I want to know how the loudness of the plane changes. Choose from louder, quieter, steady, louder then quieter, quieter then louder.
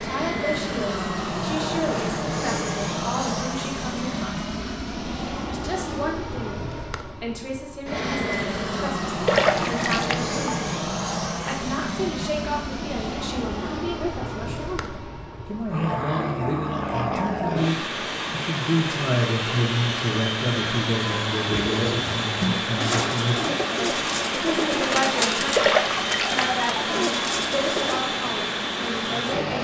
steady.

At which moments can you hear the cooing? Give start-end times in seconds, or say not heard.
21.4-28.1.